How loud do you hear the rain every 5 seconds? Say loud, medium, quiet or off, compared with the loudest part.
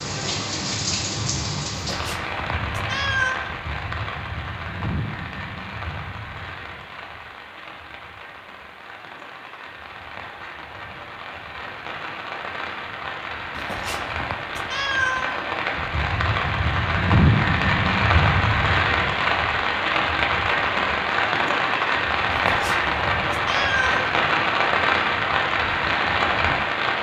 medium, quiet, medium, loud, loud, loud.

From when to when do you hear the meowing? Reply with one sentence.
You can hear the meowing from 1.7 to 3.4 s, from 13.6 to 15.4 s and from 22.3 to 24.1 s.